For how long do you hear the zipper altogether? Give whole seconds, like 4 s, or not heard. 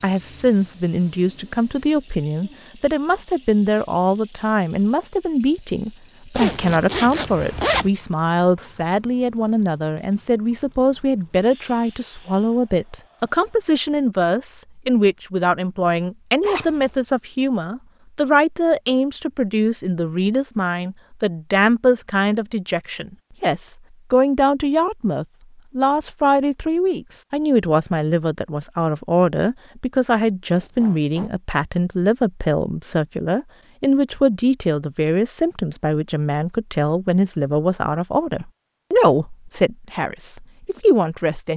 3 s.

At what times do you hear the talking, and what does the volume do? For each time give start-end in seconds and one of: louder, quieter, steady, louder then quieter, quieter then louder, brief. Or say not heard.
0.0-41.5 steady.